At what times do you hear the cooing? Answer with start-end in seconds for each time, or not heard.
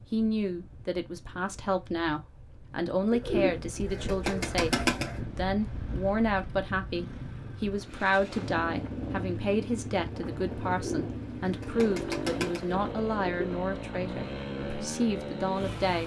3.1-5.2, 10.7-13.5.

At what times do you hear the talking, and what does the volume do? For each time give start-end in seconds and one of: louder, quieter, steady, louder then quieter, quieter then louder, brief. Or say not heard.
0.1-16.0 steady.